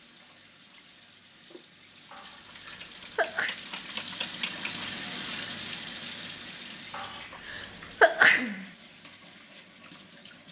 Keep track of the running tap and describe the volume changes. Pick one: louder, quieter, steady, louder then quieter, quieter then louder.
louder then quieter.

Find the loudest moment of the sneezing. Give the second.
8 s.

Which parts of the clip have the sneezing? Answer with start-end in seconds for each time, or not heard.
2.1-3.6, 6.9-8.7.